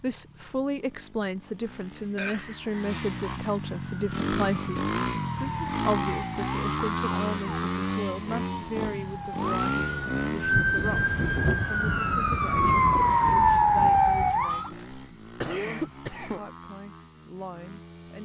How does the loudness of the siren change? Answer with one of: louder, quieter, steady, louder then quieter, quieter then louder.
louder.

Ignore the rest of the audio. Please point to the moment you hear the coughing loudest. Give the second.
16 s.